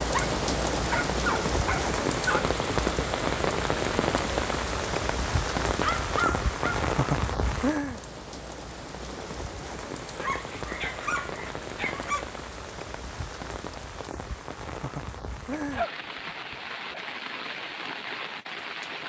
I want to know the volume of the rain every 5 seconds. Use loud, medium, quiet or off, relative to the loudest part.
loud, loud, medium, medium.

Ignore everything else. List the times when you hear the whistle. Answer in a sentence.
The whistle can't be heard in this clip.